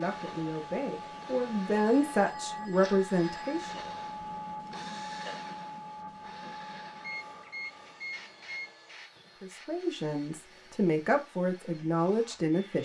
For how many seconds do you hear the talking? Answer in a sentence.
You can hear the talking for 7 seconds altogether.